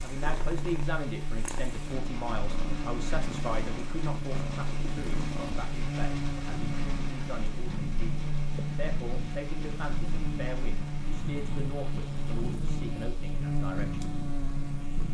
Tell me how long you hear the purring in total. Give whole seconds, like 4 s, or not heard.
15 s.